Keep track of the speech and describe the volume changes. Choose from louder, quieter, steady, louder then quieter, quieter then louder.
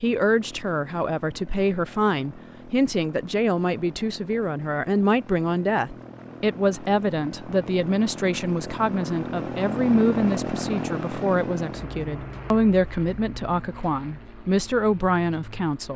steady.